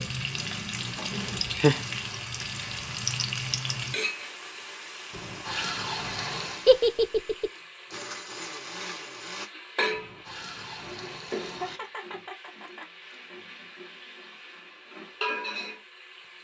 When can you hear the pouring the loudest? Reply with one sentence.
The loudest moment of the pouring is at 6 seconds.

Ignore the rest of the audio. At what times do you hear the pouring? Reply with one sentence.
The pouring can be heard from 5.1 to 6.7 s and from 9.9 to 11.8 s.